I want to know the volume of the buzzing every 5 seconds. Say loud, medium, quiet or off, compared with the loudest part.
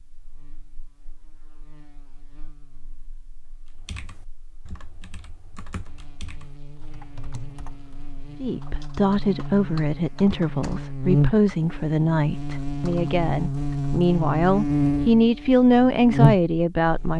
quiet, quiet, loud, loud.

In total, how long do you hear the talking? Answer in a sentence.
The talking can be heard for 9 seconds in total.